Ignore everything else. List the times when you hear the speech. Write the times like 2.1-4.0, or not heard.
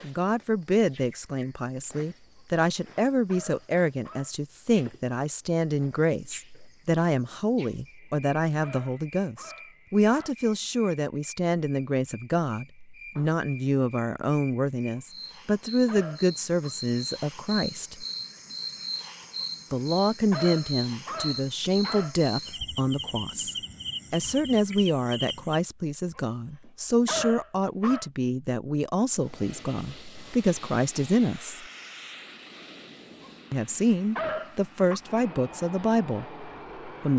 0.0-18.1, 19.7-31.6, 33.5-37.1.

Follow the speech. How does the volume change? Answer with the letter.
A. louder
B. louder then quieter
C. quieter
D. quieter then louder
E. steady
E.